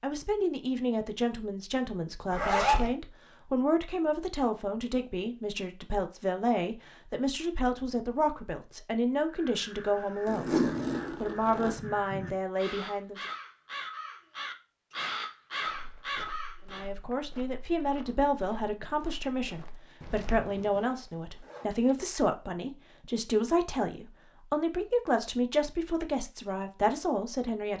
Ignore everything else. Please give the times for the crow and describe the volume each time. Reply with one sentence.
You can hear the crow from 9.2 to 16.9 s, getting louder.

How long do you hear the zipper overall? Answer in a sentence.
You can hear the zipper for 3 seconds altogether.